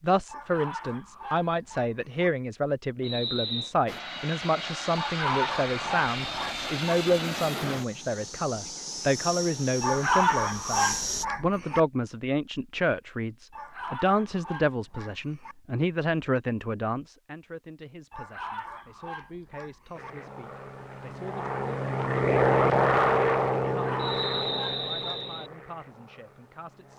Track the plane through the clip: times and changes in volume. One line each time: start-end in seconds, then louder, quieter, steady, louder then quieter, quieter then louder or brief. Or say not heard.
3.9-11.2 steady
19.9-26.9 louder then quieter.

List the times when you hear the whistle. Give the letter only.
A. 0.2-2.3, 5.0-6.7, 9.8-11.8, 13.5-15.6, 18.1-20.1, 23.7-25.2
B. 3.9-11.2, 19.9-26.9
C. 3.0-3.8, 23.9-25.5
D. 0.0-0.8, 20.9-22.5
C.